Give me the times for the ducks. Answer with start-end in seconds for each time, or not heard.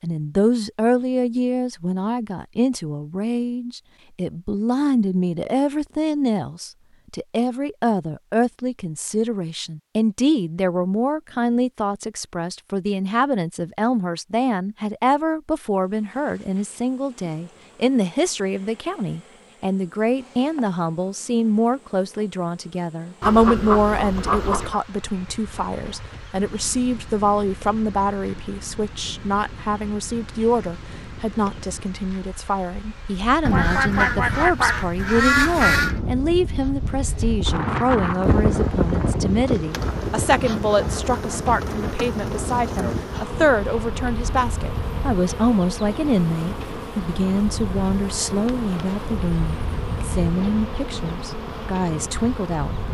23.2-24.8, 33.5-36.0.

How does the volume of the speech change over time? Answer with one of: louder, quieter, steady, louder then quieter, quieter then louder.
steady.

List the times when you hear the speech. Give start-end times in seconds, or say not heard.
0.0-52.8.